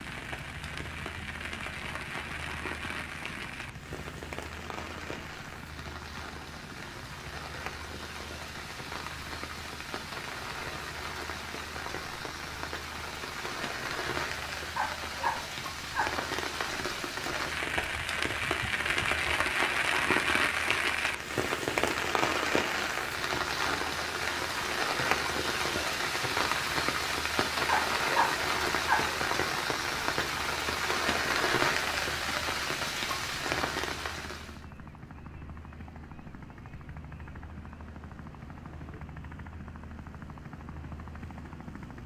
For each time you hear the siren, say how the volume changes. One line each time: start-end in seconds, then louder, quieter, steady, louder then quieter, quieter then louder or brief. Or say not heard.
not heard.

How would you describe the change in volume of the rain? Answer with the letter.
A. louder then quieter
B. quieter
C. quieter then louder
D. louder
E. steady
D.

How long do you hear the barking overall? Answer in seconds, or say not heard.
3 s.